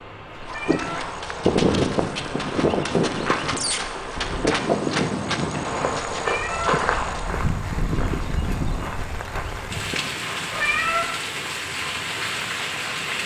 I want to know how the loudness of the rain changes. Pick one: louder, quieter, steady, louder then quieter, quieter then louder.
louder.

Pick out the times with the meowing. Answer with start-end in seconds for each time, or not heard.
0.5-1.1, 6.2-6.8, 10.5-11.1.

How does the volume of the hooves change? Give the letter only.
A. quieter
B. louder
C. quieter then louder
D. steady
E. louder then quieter
A.